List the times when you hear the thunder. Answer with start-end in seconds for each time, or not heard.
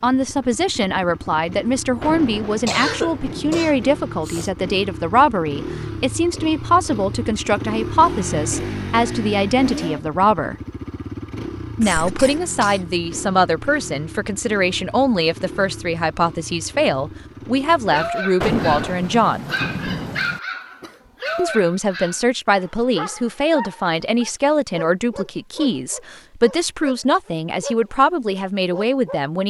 2.0-4.0, 18.4-20.4.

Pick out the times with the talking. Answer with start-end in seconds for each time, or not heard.
0.0-10.6, 11.8-19.5, 21.4-29.4.